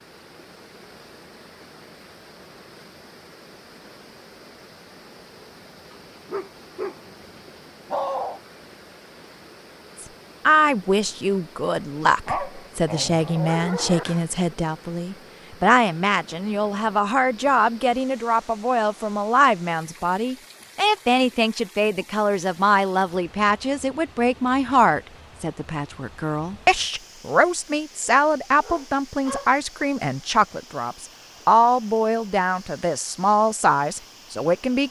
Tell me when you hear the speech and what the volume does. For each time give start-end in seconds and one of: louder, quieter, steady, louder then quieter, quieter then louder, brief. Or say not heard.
10.0-34.8 steady.